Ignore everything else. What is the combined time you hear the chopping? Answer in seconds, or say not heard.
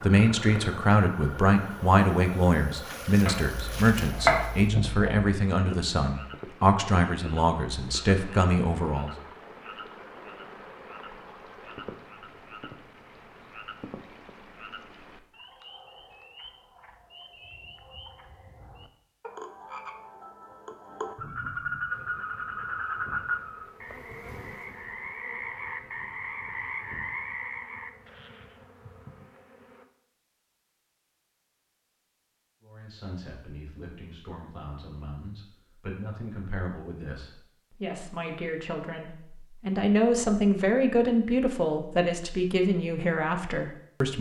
2 s.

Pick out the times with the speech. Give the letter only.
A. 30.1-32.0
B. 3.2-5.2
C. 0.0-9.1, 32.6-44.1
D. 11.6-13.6
C.